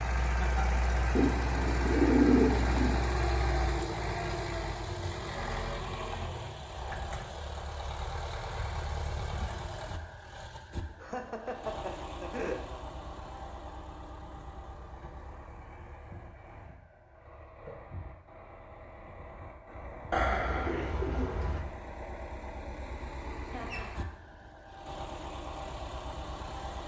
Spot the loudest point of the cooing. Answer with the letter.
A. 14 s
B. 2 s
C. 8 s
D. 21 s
B.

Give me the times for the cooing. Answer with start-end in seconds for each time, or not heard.
1.1-3.0, 20.1-21.6.